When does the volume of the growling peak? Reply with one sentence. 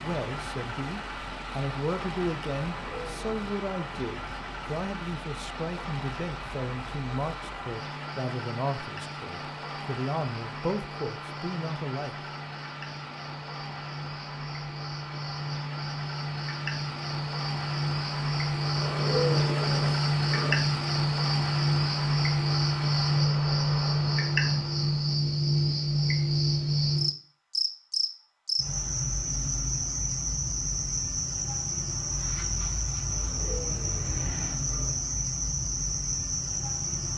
The loudest moment of the growling is at 19 seconds.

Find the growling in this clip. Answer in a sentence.
You can hear the growling from 2.8 to 3.5 s, from 18.8 to 20.6 s and from 33.1 to 34.9 s.